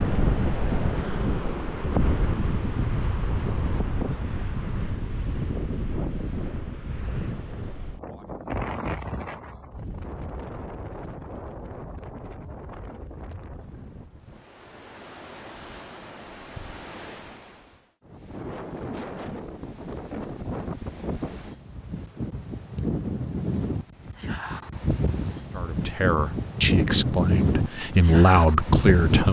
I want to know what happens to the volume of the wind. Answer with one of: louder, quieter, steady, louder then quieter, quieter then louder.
quieter then louder.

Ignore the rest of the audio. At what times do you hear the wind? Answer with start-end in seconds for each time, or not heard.
0.0-29.2.